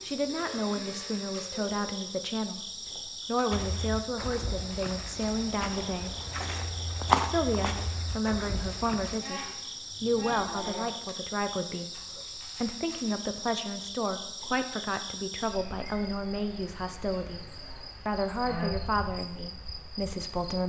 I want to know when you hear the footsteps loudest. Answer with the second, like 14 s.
7 s.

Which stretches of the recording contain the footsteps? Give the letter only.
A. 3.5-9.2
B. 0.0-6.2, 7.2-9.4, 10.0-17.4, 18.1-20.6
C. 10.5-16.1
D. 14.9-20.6
A.